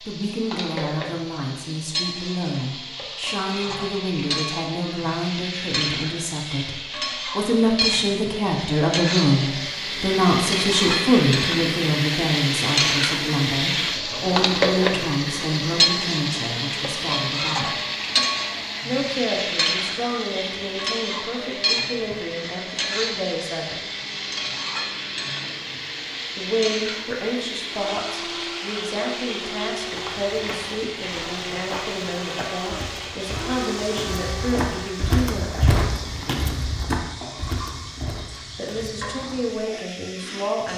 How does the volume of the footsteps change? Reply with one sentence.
The volume of the footsteps goes up, then down.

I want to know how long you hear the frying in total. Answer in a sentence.
The frying can be heard for 41 seconds in total.